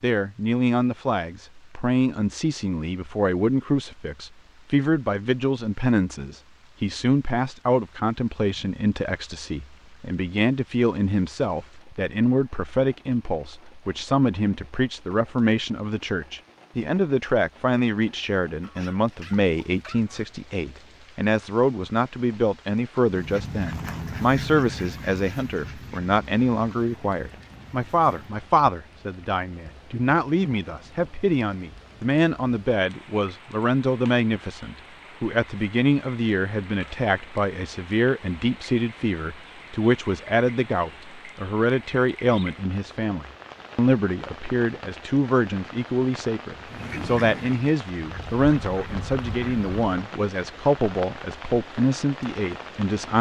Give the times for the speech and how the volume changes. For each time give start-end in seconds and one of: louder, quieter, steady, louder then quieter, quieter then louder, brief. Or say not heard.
0.0-53.1 steady.